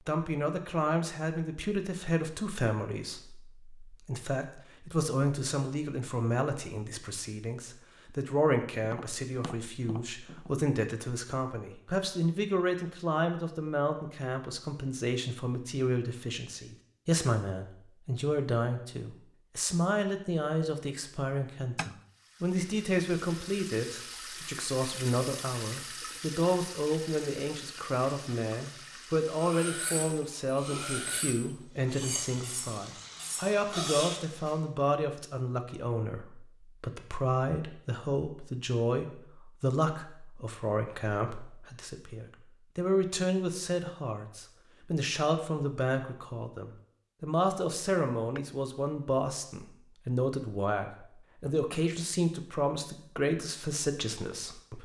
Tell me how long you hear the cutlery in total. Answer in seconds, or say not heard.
5 s.